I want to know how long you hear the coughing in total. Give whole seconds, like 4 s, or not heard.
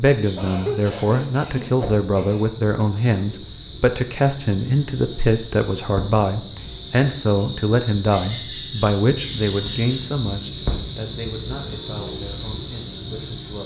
2 s.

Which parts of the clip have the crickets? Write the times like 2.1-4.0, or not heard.
0.0-13.6.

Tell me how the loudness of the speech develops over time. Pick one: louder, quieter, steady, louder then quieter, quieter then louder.
quieter.